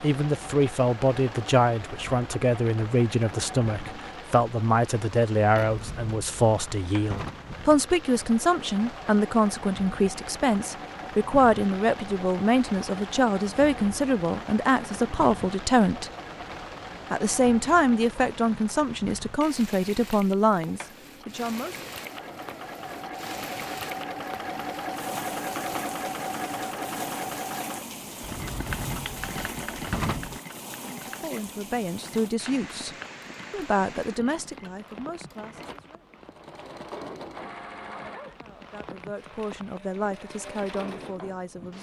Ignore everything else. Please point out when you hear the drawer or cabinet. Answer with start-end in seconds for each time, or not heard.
5.7-7.5, 28.2-30.4.